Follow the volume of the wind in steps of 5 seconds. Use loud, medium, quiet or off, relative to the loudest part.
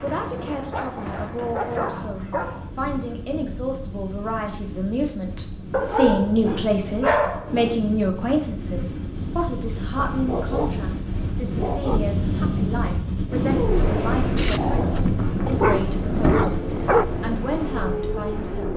medium, medium, loud, loud.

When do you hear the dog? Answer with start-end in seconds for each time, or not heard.
0.7-2.7, 5.7-7.7, 9.9-12.0, 14.3-17.1.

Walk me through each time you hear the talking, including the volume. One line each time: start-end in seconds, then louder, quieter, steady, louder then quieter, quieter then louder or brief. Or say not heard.
0.0-18.7 louder then quieter.